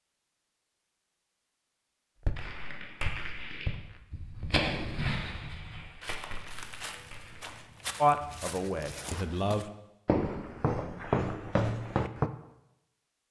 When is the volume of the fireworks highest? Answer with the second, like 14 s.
5 s.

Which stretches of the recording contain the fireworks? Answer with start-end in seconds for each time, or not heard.
2.4-7.5.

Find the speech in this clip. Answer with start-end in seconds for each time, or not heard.
8.0-9.7.